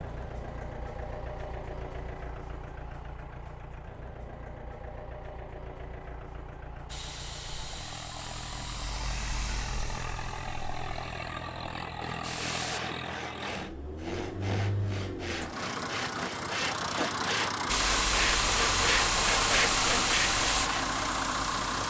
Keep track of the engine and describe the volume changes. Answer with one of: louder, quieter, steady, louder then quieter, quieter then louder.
louder.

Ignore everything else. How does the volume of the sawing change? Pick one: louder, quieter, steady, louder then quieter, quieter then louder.
louder.